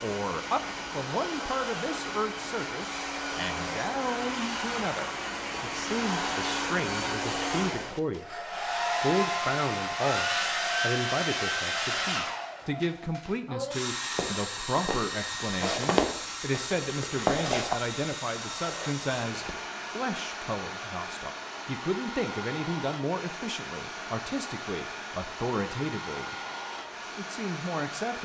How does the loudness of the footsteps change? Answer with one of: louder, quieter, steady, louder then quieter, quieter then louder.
louder then quieter.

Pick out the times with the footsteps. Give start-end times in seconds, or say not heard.
14.2-19.6.